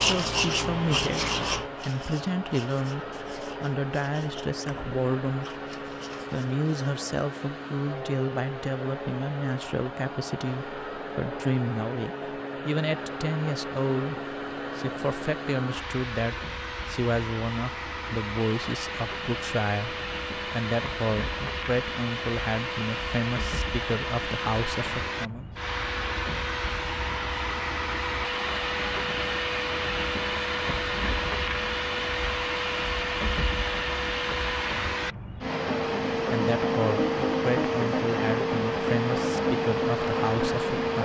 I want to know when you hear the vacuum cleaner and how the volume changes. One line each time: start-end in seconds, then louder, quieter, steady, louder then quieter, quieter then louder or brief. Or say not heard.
0.0-41.0 louder.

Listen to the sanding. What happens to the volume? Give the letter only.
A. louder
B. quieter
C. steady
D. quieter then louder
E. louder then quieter
B.